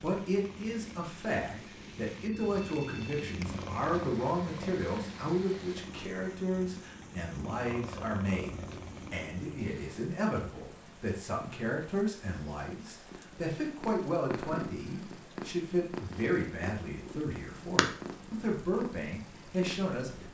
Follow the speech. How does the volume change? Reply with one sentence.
The loudness of the speech stays about the same.